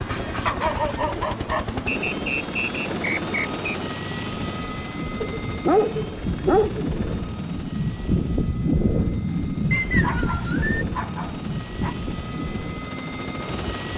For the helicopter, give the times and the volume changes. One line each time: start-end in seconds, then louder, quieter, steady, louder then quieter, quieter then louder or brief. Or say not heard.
0.0-13.9 quieter then louder.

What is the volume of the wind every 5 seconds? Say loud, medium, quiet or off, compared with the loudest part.
medium, loud, loud.